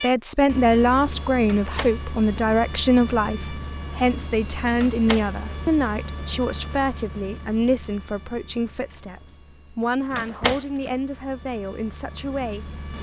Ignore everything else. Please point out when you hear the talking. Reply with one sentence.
The talking can be heard from 0.0 to 12.7 s.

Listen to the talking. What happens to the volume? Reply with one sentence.
The volume of the talking goes down.